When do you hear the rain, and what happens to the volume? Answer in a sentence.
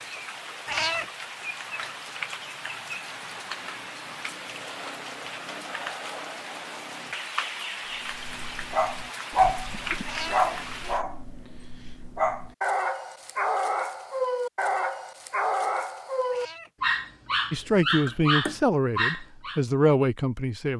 The rain can be heard from 0.0 to 11.1 s, at a steady volume.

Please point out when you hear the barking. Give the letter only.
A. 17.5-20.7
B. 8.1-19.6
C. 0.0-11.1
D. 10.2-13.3
B.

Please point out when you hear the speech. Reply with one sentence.
You can hear the speech from 17.5 to 20.7 s.